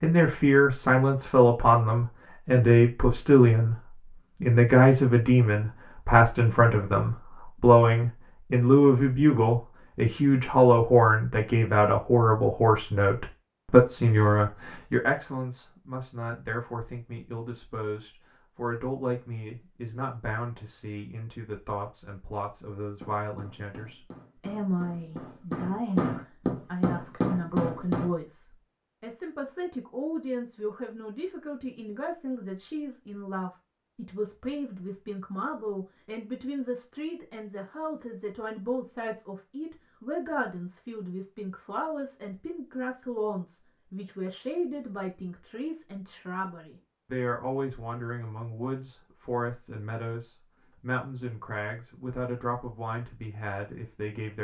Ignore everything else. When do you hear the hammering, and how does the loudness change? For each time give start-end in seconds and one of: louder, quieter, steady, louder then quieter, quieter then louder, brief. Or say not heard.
22.8-28.1 louder.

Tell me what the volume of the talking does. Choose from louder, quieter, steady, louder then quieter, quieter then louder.
quieter.